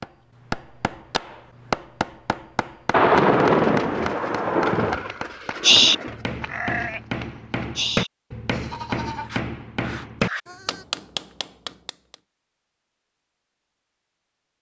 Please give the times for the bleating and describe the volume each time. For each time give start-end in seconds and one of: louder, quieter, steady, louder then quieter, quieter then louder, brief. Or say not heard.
5.0-10.8 quieter.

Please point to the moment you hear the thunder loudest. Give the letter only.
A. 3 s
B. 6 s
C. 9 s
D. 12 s
A.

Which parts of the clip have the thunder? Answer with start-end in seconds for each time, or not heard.
2.9-5.0.